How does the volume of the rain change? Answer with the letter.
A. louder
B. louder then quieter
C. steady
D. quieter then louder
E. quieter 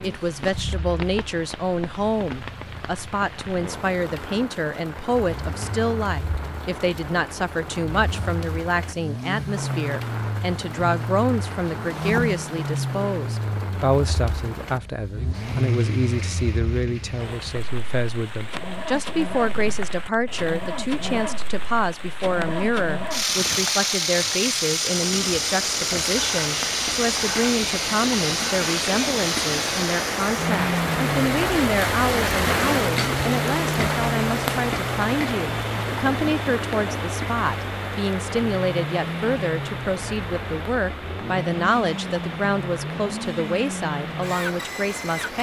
B.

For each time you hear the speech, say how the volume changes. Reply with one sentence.
You can hear the speech from 0.0 to 45.3 s, at a steady volume.